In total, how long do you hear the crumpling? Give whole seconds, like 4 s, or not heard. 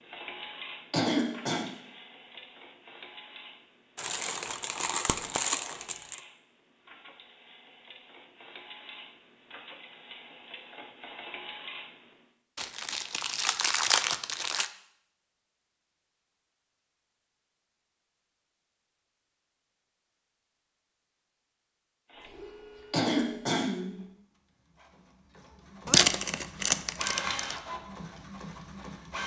6 s.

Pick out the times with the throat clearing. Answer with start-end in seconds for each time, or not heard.
0.9-1.7, 22.9-24.1.